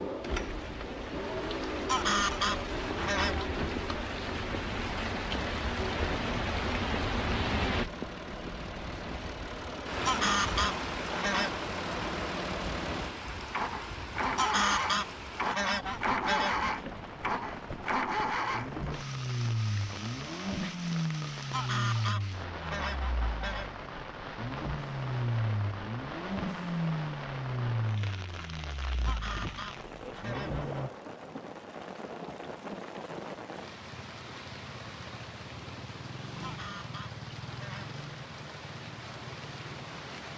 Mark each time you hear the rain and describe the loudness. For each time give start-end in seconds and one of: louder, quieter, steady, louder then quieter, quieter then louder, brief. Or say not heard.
0.0-40.3 quieter.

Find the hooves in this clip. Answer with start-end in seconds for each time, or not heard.
not heard.